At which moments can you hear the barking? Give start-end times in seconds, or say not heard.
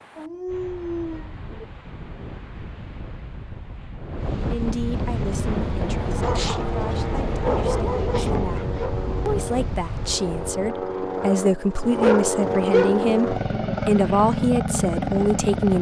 0.1-1.6, 6.2-8.9, 11.2-13.1.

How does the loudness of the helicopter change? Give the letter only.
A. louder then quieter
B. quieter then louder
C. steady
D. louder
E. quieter
D.